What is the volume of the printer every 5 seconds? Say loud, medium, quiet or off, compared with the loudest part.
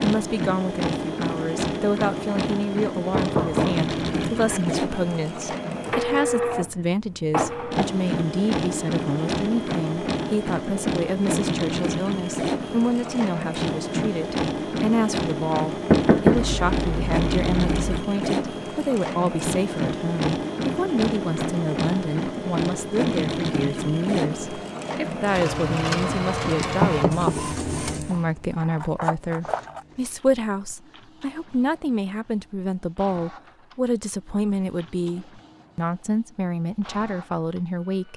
loud, loud, loud, loud, loud, loud, quiet, quiet.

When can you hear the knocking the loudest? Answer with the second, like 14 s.
16 s.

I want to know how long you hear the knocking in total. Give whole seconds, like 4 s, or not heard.
3 s.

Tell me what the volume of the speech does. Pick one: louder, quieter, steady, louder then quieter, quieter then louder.
steady.